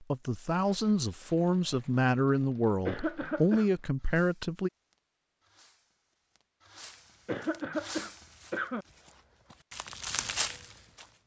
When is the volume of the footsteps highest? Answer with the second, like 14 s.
10 s.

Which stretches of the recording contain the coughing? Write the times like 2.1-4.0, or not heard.
2.9-3.7, 7.2-8.8.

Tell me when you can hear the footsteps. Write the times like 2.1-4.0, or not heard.
6.8-11.2.